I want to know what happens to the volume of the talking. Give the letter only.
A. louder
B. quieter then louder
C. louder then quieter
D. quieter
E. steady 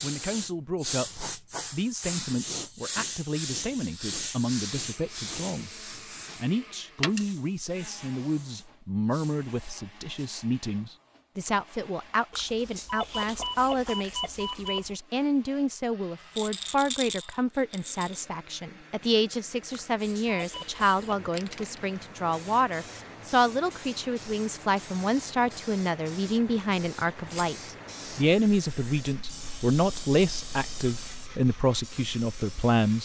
A.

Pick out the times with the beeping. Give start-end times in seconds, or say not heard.
12.3-14.9, 19.9-21.1.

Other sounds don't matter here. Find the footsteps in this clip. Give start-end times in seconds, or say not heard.
not heard.